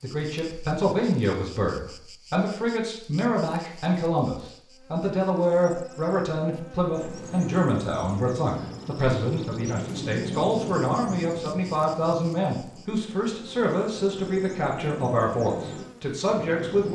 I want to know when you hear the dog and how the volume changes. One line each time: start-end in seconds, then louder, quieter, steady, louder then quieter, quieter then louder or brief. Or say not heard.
not heard.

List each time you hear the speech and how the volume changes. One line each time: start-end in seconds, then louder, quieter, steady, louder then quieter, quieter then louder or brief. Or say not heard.
0.0-16.9 steady.